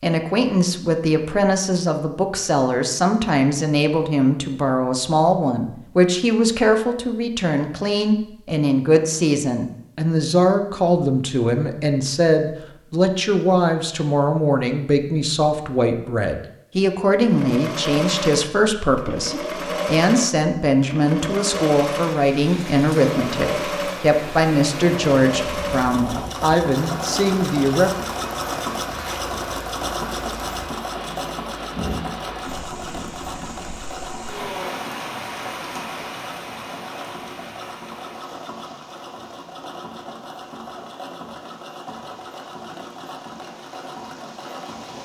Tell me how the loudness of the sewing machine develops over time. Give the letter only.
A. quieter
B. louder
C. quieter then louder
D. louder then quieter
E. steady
A.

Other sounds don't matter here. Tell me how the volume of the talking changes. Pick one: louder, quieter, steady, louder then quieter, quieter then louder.
steady.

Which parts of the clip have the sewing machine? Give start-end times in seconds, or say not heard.
17.1-45.0.